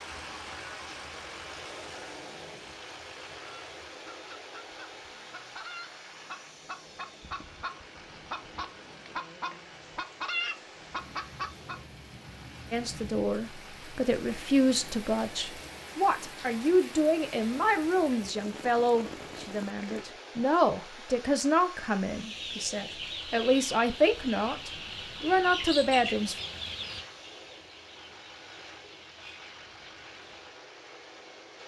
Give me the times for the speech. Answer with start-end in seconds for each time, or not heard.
12.7-26.4.